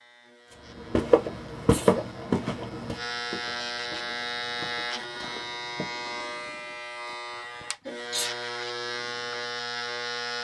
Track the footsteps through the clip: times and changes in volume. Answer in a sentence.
The footsteps can be heard from 0.8 to 6.2 s, getting quieter.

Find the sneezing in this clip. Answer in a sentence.
You can hear the sneezing from 1.6 to 2.1 s and from 7.0 to 8.3 s.